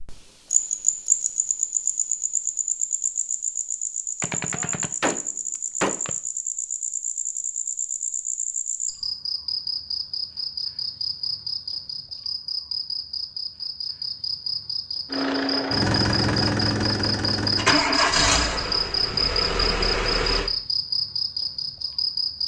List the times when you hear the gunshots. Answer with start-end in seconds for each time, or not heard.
4.2-6.1.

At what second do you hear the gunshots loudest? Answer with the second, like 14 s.
6 s.